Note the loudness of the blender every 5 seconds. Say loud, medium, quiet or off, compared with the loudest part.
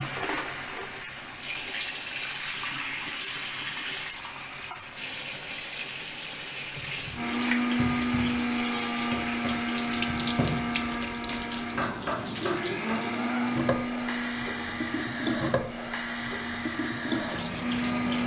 off, loud, loud, medium.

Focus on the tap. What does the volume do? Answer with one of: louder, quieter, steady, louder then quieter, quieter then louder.
steady.